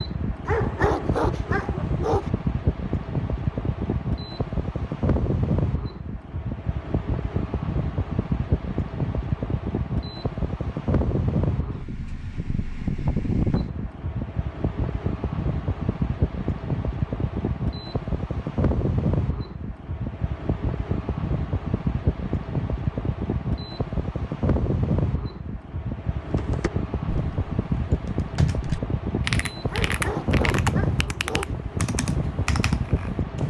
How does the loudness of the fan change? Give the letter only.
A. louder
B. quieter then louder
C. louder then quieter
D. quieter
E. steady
E.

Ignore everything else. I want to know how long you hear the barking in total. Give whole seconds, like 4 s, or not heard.
4 s.